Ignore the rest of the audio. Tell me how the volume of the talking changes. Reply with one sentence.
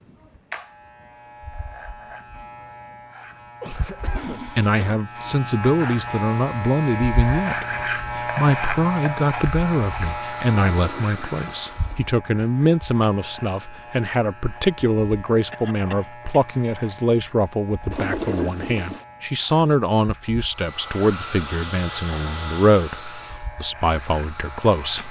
The loudness of the talking stays about the same.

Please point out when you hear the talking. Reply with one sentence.
The talking can be heard from 4.5 to 25.0 s.